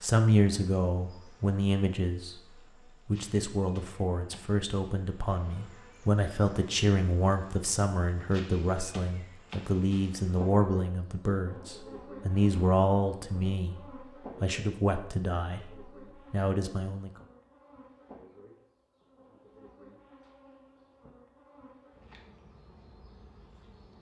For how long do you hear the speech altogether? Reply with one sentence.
The speech can be heard for 16 seconds in total.